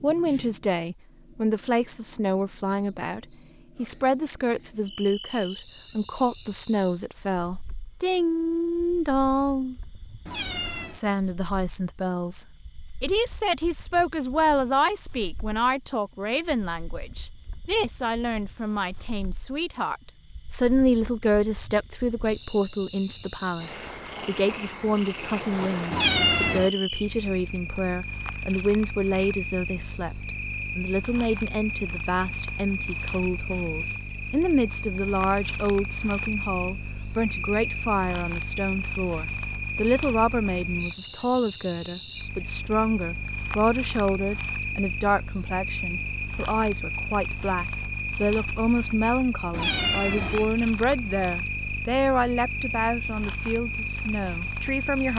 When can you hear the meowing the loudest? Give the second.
26 s.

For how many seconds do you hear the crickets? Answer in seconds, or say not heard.
55 s.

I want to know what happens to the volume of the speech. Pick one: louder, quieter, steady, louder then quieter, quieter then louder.
steady.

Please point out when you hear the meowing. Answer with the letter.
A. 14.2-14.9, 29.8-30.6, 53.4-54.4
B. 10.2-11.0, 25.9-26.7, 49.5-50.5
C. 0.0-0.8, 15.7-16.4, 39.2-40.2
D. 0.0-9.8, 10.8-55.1
B.